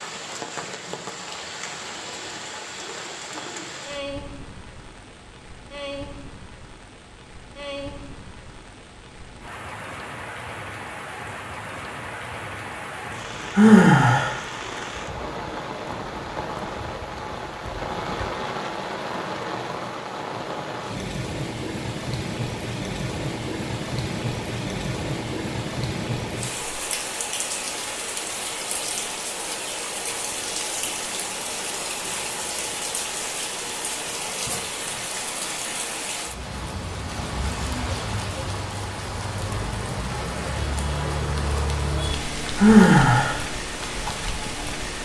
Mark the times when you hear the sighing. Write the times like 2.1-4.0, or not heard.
13.6-14.3, 42.5-43.4.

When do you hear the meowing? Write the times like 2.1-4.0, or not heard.
not heard.